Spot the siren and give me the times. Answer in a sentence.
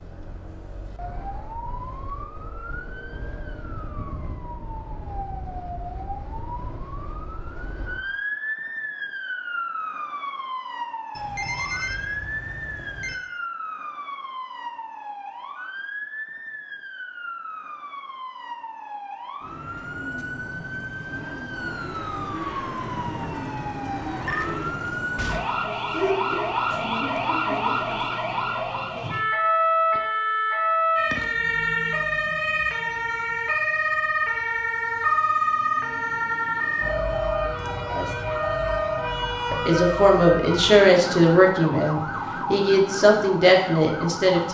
You can hear the siren from 0.0 to 44.4 s.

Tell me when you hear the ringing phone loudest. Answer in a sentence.
The loudest moment of the ringing phone is at 12 seconds.